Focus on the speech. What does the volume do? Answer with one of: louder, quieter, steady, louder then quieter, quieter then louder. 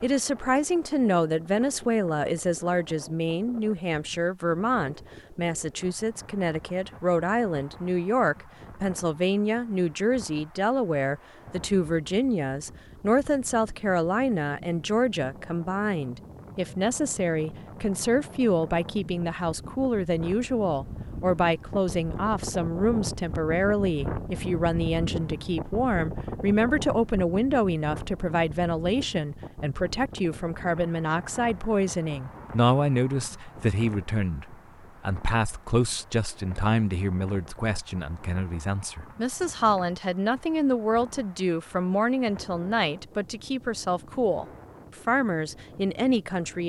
steady.